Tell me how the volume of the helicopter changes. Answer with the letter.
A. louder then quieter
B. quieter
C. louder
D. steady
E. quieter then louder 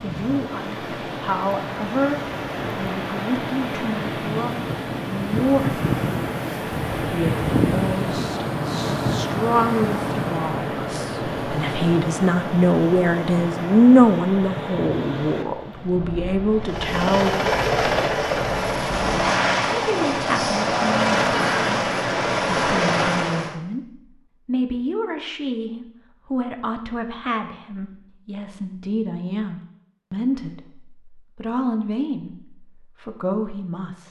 D.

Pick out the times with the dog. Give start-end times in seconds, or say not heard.
not heard.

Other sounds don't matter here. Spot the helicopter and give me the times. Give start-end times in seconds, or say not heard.
16.6-23.6.